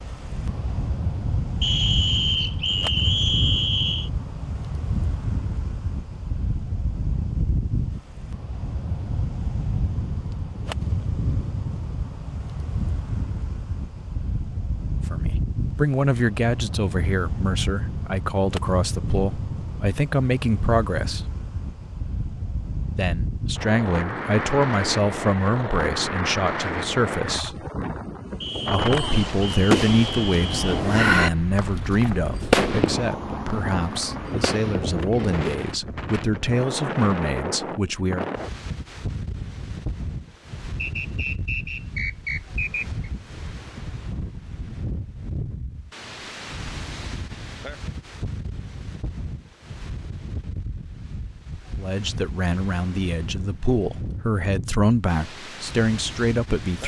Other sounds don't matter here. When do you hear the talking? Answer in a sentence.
You can hear the talking from 15.1 to 21.2 s, from 22.9 to 27.6 s, from 28.7 to 38.3 s and from 51.8 to 56.8 s.